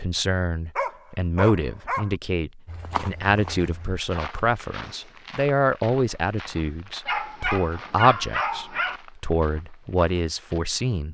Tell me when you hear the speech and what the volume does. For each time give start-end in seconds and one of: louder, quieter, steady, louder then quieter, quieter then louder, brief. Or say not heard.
0.0-11.0 steady.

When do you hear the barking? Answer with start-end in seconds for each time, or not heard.
0.8-2.1, 7.0-9.0.